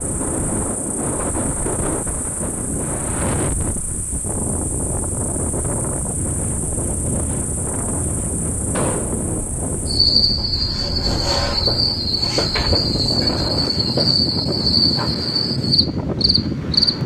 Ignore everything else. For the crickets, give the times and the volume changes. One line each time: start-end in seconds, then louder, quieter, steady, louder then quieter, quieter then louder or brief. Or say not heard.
0.0-17.0 louder.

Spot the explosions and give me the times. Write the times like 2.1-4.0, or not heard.
8.7-9.2.